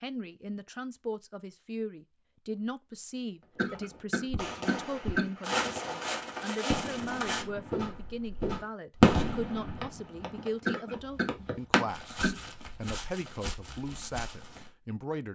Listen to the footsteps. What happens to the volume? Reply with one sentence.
The loudness of the footsteps goes down.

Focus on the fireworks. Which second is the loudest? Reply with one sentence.
The loudest moment of the fireworks is at 9 seconds.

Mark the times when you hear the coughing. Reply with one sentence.
You can hear the coughing from 3.5 to 5.3 s and from 10.7 to 12.4 s.